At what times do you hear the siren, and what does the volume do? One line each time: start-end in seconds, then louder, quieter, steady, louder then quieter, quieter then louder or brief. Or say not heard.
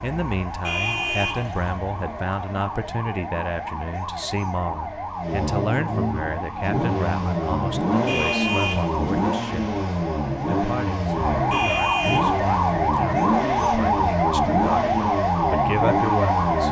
0.0-16.6 louder.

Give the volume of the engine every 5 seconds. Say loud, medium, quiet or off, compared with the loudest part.
quiet, loud, loud, loud.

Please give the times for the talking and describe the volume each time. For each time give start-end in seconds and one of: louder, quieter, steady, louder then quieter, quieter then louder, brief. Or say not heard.
0.0-9.7 steady
10.5-16.6 louder.